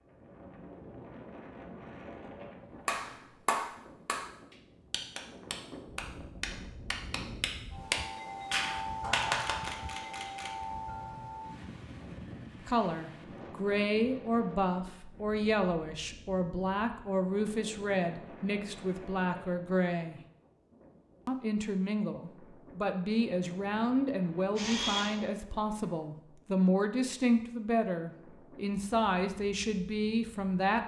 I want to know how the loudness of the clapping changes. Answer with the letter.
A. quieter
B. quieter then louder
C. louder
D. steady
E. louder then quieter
B.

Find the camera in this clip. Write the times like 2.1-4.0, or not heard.
9.2-10.5, 24.6-25.1.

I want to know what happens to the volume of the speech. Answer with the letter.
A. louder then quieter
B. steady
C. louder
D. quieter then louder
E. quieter
B.